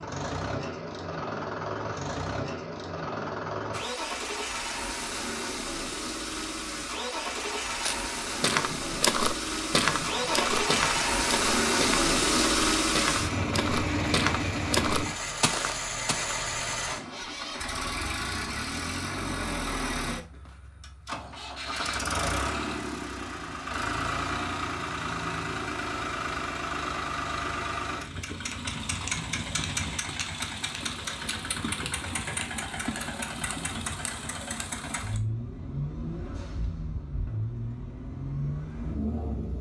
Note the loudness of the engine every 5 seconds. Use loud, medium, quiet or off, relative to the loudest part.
medium, medium, loud, medium, medium, medium, medium, medium.